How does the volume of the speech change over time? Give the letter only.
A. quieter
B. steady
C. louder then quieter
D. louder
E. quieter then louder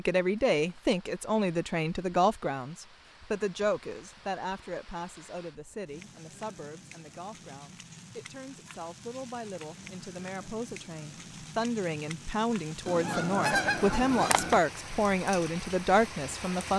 E.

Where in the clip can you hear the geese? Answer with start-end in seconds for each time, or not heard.
12.8-14.6.